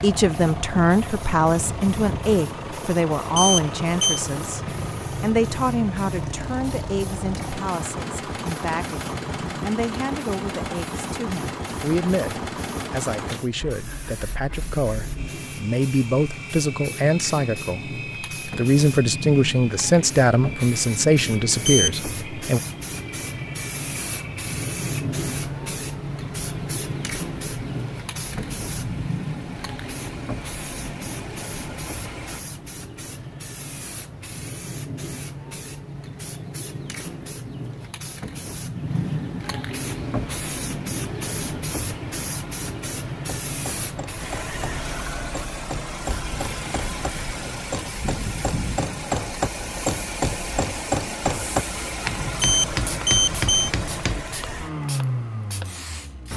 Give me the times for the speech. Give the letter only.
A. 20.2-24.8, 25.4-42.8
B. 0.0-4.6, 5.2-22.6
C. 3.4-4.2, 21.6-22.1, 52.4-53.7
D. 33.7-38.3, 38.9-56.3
B.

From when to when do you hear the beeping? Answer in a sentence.
You can hear the beeping from 3.4 to 4.2 s, from 21.6 to 22.1 s and from 52.4 to 53.7 s.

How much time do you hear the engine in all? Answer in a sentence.
You can hear the engine for 49 seconds altogether.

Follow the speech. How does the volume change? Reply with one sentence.
The loudness of the speech goes down, then up.